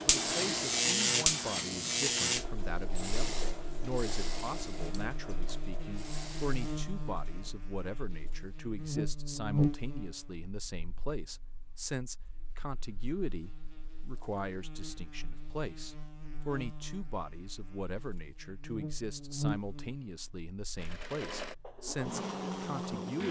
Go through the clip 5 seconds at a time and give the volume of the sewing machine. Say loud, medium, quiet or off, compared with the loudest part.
loud, medium, off, off, loud.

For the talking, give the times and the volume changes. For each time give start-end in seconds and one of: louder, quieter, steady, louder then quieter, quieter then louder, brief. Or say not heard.
0.1-23.2 steady.